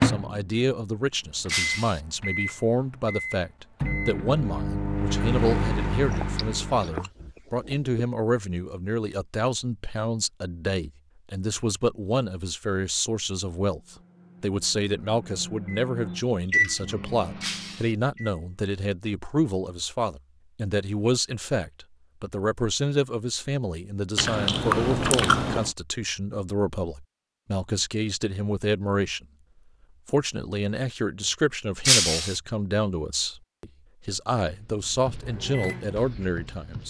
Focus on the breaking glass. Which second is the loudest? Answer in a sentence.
The loudest moment of the breaking glass is at 32 seconds.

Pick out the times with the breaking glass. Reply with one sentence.
You can hear the breaking glass from 1.4 to 2.0 s, from 17.4 to 17.9 s and from 31.9 to 32.4 s.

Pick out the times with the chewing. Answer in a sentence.
The chewing can be heard from 6.0 to 7.9 s and from 24.1 to 25.7 s.